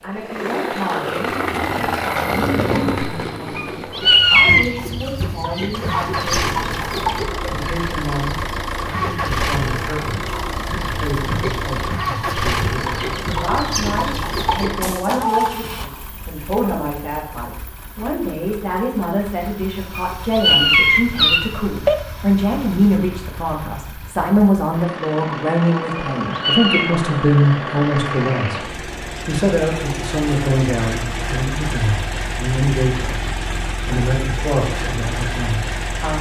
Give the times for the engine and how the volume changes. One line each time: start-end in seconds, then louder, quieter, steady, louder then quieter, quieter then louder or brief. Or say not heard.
0.0-36.1 quieter then louder.